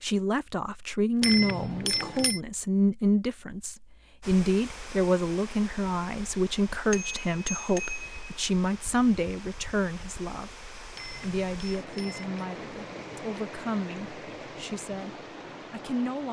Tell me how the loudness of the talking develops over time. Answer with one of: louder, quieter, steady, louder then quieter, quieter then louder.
quieter.